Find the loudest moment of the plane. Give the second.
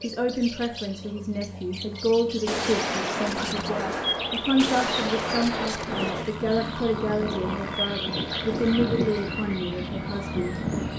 9 s.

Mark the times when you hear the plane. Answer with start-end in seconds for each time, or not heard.
0.0-10.9.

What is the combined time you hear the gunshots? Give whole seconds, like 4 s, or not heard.
4 s.